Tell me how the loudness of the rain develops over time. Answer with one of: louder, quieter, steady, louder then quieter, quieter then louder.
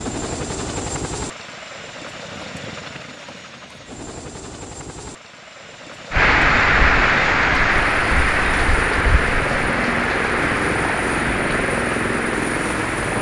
quieter.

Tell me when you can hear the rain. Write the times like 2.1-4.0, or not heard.
6.1-13.1.